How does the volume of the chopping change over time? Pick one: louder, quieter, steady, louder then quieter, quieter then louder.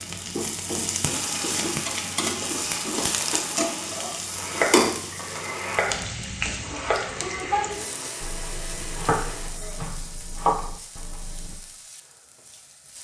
quieter then louder.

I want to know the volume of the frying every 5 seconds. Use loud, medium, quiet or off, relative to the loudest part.
loud, medium, quiet.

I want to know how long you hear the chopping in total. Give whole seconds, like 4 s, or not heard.
8 s.